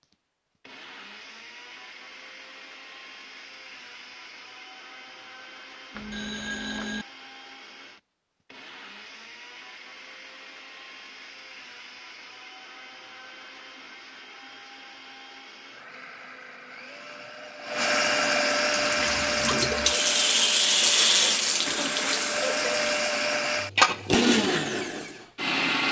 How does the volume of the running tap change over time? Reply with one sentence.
The volume of the running tap goes up, then down.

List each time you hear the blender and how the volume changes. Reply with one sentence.
The blender can be heard from 0.0 to 25.8 s, getting louder.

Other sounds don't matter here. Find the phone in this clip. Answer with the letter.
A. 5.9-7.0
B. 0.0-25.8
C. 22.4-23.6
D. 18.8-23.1
A.